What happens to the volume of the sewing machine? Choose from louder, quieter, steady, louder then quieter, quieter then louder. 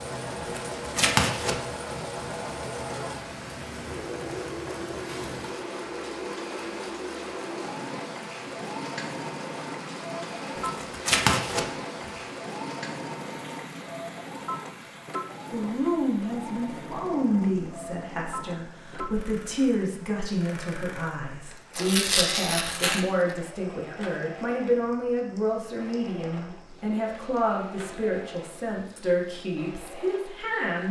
quieter.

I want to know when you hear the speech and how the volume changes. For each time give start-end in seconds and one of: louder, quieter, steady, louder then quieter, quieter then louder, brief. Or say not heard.
15.5-30.8 steady.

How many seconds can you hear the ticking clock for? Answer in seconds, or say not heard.
not heard.